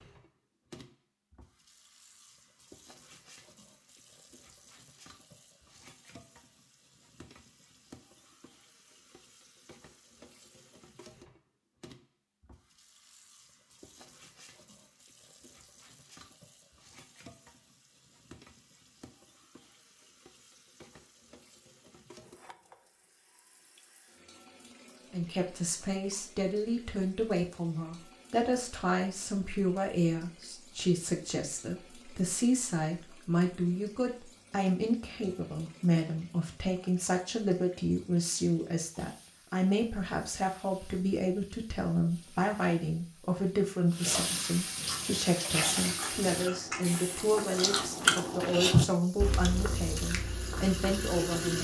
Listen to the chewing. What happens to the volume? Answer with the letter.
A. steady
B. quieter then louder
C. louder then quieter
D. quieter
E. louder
C.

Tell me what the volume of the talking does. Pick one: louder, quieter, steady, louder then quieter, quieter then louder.
steady.